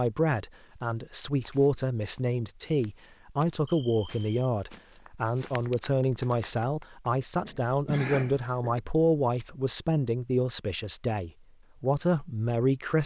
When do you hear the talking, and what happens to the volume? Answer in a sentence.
The talking can be heard from 0.0 to 13.0 s, at a steady volume.